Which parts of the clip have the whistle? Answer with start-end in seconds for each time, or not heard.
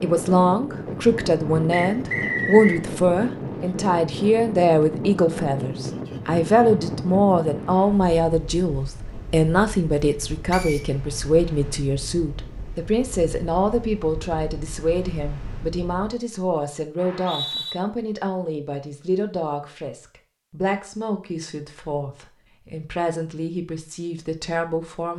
1.7-2.8, 10.5-10.9, 16.9-17.8.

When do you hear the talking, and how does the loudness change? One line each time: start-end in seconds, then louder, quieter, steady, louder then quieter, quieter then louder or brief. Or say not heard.
0.0-25.1 quieter.